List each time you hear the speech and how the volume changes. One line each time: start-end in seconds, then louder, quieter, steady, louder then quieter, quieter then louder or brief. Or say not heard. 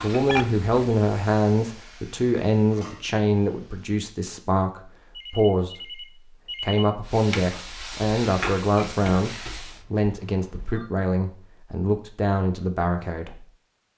0.0-6.0 quieter then louder
6.6-13.4 steady.